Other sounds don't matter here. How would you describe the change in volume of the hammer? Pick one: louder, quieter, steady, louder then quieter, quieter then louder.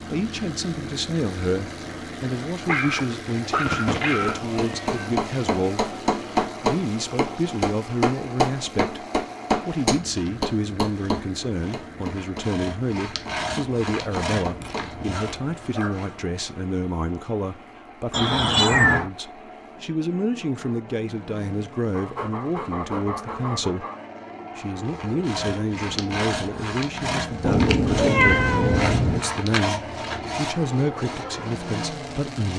quieter.